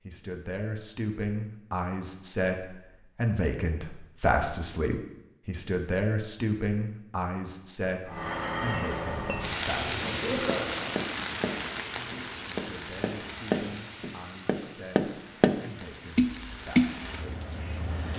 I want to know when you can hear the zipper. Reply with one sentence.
The zipper can be heard from 9.8 to 10.9 s.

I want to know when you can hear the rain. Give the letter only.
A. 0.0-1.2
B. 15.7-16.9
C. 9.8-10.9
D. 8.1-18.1
D.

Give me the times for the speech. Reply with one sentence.
You can hear the speech from 0.1 to 10.4 s and from 12.5 to 17.4 s.